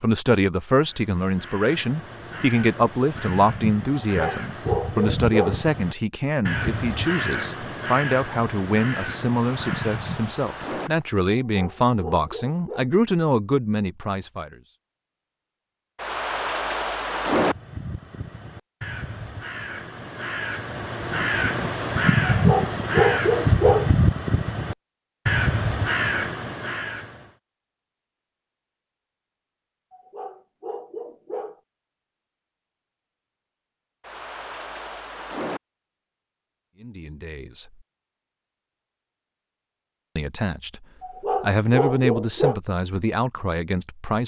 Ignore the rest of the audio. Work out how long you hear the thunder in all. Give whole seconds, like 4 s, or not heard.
5 s.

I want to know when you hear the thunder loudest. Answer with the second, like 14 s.
17 s.